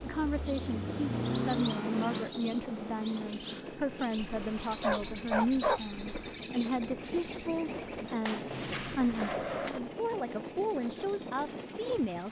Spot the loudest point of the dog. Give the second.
6 s.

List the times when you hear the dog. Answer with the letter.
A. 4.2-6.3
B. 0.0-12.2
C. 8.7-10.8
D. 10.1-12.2
A.